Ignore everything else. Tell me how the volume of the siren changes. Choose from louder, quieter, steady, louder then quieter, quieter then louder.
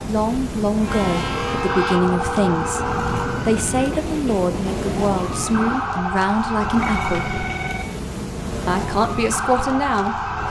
steady.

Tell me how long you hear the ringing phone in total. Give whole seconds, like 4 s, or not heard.
3 s.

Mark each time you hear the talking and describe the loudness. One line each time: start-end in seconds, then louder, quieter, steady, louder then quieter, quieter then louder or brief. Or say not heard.
0.1-7.3 steady
8.7-10.2 brief.